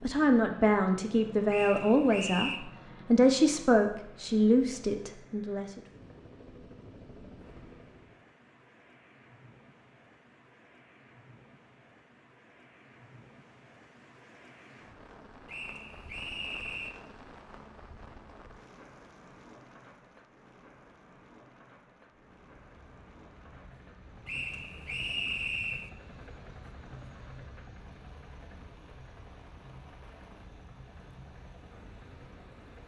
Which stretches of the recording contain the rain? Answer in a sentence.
You can hear the rain from 7.3 to 32.8 s.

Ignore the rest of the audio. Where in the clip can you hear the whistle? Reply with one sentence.
You can hear the whistle from 1.4 to 2.6 s, from 15.4 to 16.9 s and from 24.2 to 25.9 s.